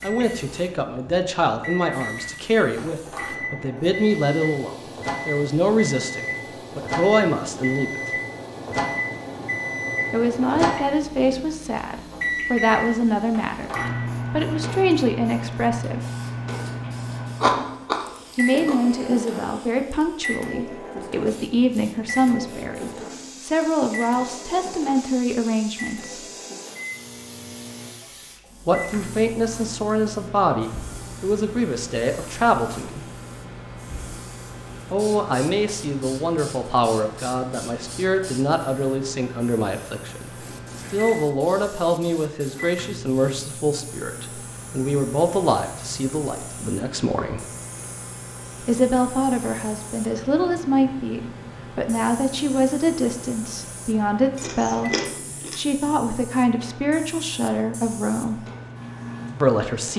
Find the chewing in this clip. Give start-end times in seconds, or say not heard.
17.3-18.8, 54.4-55.9.